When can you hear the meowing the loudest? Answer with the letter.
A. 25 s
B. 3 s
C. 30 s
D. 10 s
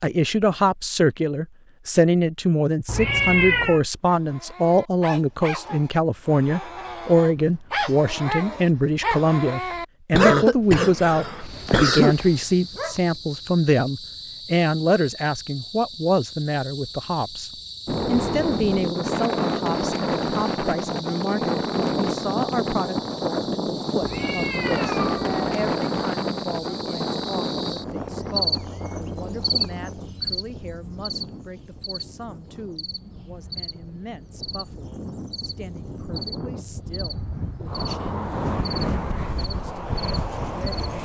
B.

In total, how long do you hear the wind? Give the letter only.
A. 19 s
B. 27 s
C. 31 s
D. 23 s
D.